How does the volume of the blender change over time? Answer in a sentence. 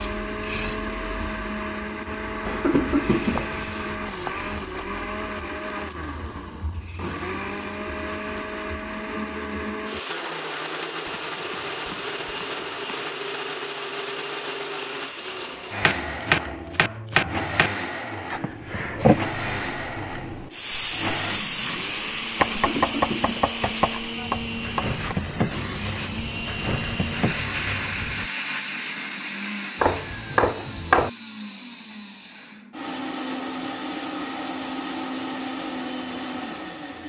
The volume of the blender stays about the same.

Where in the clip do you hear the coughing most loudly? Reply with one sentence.
The loudest moment of the coughing is at 3 seconds.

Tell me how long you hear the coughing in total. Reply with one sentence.
The coughing can be heard for 2 seconds in total.